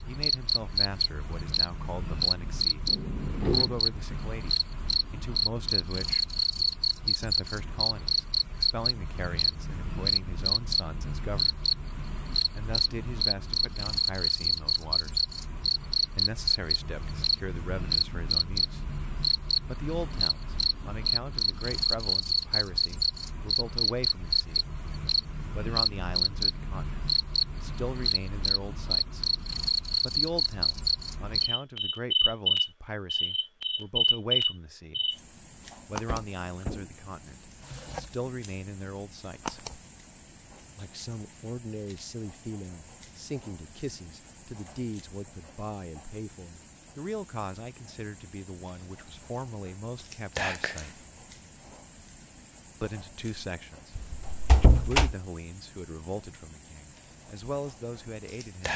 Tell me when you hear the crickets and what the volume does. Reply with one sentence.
The crickets can be heard from 0.0 to 58.7 s, getting quieter.